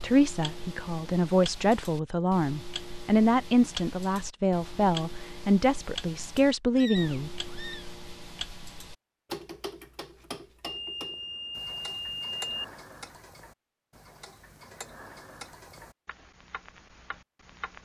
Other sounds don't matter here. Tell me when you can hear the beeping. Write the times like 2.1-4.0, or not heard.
10.7-12.7.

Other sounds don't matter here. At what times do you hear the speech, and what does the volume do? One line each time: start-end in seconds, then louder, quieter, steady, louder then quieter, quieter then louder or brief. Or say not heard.
0.0-7.3 steady.